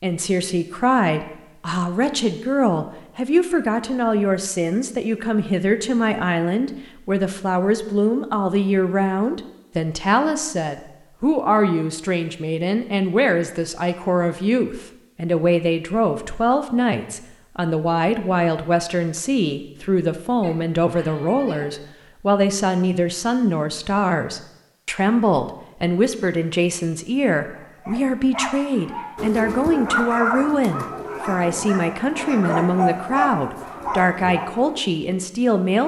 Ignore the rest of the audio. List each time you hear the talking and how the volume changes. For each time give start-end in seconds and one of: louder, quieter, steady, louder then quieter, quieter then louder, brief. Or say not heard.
0.0-35.8 steady.